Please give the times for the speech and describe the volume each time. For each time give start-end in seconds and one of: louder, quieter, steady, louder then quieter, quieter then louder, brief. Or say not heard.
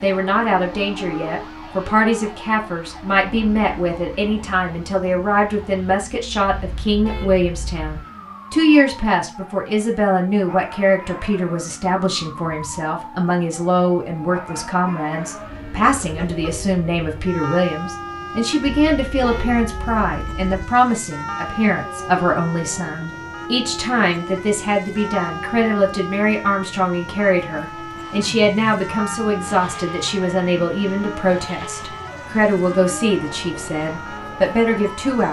0.0-35.2 steady.